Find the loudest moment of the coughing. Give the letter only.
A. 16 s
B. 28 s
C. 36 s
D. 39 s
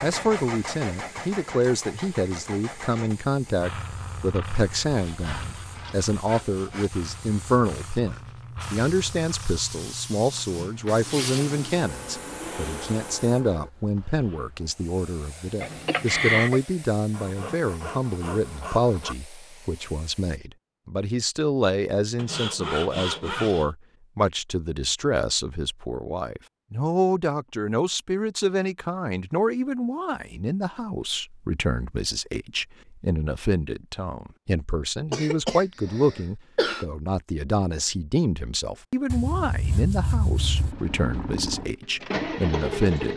A.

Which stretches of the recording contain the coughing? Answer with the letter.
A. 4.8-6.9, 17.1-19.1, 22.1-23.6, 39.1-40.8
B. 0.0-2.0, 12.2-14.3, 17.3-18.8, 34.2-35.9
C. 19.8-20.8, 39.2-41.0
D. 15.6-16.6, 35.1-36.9
D.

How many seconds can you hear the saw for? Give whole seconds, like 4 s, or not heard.
7 s.